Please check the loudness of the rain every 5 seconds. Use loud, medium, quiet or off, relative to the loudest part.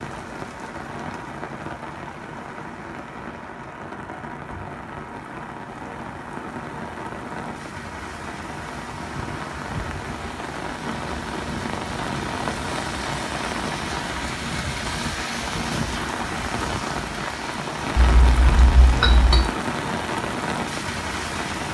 medium, medium, loud, loud, loud.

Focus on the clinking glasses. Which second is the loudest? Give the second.
19 s.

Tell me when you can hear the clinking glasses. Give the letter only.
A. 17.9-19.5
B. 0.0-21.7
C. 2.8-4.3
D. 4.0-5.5
A.